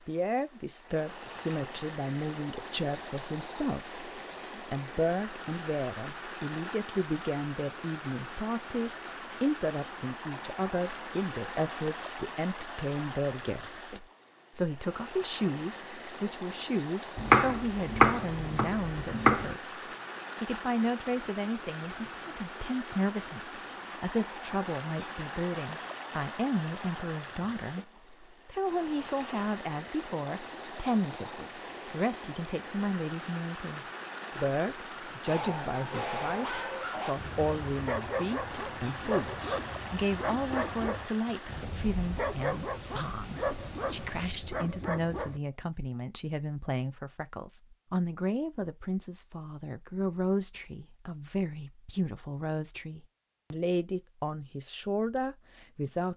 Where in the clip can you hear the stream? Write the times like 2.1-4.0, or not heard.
0.0-44.3.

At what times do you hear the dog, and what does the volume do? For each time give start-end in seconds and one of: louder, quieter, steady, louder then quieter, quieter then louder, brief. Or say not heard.
35.2-45.4 steady.